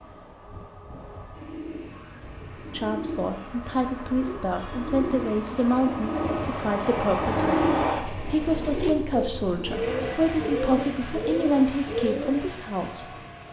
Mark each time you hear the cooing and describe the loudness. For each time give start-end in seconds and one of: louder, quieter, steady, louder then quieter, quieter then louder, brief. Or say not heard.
1.3-12.5 louder.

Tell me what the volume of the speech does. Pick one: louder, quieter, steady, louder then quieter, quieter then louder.
steady.